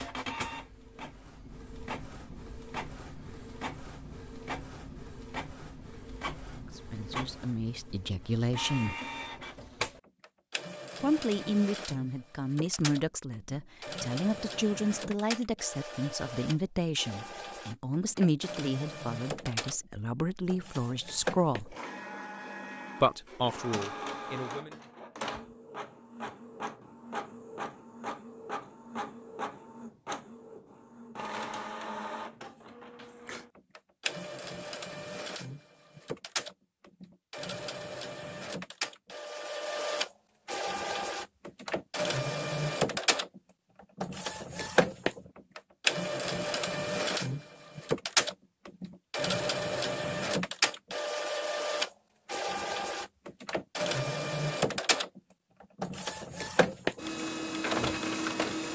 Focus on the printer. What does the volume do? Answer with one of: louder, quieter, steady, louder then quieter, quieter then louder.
louder.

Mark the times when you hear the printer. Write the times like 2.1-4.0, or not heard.
0.0-58.7.